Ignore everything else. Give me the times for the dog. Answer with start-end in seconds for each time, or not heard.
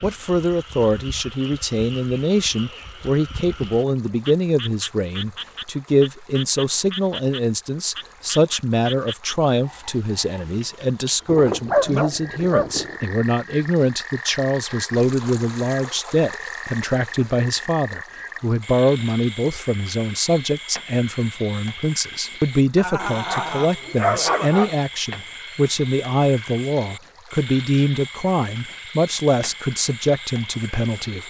11.2-13.0, 22.8-24.8.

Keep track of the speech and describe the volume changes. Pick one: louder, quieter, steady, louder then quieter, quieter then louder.
steady.